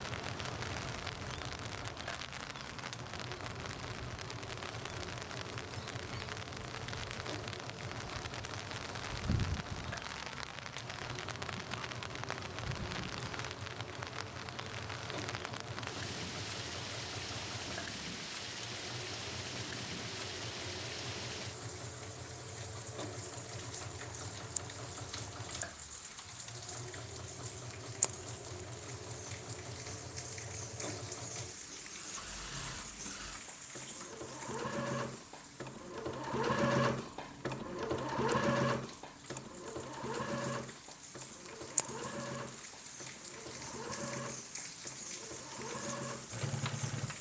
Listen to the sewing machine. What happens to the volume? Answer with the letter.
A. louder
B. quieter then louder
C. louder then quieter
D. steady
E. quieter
A.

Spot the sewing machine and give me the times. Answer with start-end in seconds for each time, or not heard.
0.0-47.1.